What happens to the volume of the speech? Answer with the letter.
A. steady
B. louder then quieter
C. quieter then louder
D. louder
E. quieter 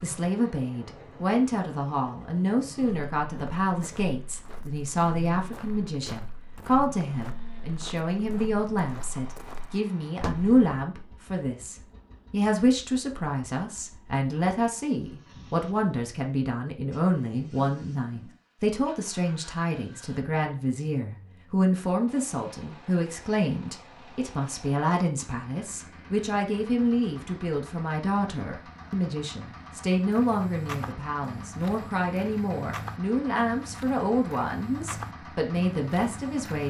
A.